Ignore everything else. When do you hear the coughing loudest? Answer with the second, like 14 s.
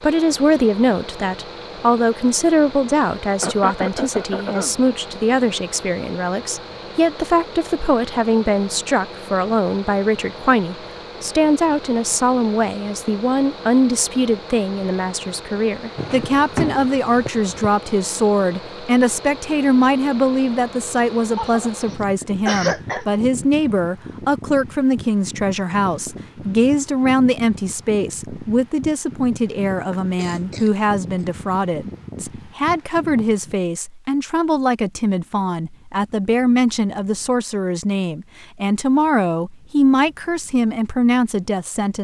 23 s.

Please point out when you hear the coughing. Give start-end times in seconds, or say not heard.
3.4-4.8, 21.4-23.1, 29.4-31.2.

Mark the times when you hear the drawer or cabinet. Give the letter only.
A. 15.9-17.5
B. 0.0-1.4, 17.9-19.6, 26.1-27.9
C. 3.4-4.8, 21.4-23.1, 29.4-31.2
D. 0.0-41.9
A.